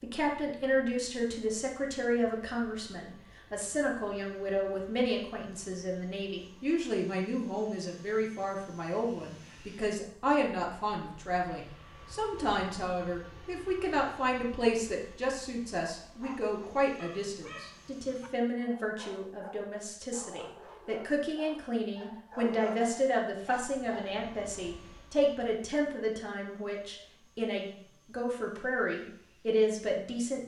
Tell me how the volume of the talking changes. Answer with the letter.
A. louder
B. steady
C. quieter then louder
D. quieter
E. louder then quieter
B.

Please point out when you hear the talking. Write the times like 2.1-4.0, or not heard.
0.0-30.4.